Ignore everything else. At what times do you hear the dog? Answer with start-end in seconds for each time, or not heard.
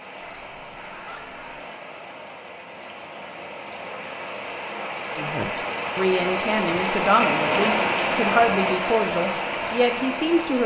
0.2-1.6.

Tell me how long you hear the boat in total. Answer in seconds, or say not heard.
not heard.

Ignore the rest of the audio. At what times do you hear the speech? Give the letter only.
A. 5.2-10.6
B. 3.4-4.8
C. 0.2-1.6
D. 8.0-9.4
A.